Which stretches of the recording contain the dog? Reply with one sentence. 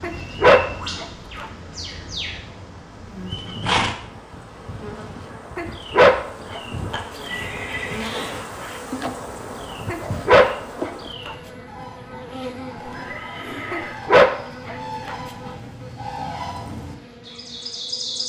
The dog can be heard from 0.0 to 1.4 s, from 5.5 to 7.0 s, from 9.8 to 11.3 s and from 13.7 to 15.5 s.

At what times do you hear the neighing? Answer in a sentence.
You can hear the neighing from 3.3 to 4.0 s, from 6.9 to 8.8 s and from 12.8 to 14.0 s.